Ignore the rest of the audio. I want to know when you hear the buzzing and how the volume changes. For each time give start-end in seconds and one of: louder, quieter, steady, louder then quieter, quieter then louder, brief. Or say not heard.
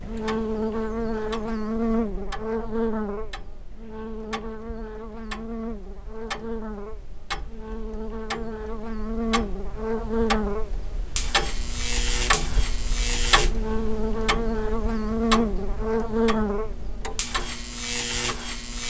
0.0-18.8 quieter then louder.